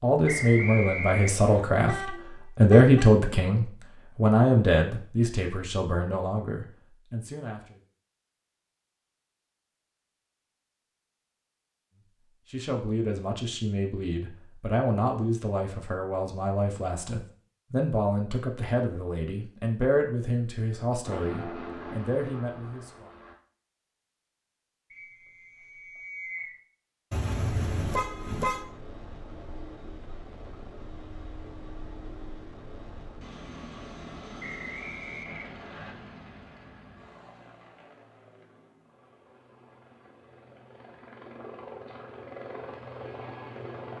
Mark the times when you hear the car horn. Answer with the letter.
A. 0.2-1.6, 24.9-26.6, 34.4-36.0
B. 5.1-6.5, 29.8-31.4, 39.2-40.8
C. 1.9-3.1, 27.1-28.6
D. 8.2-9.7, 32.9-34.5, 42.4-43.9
C.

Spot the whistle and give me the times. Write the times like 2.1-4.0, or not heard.
0.2-1.6, 24.9-26.6, 34.4-36.0.